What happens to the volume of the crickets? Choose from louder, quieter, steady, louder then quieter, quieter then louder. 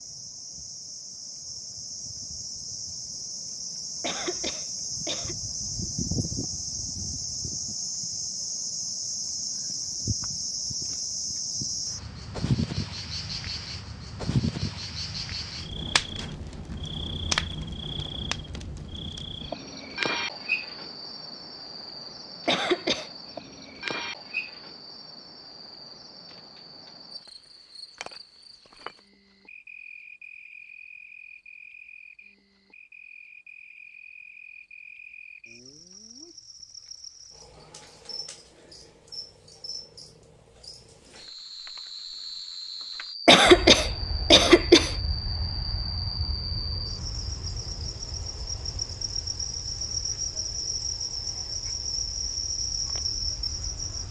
quieter then louder.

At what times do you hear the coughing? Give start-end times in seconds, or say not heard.
4.0-5.3, 22.4-23.1, 43.2-45.0.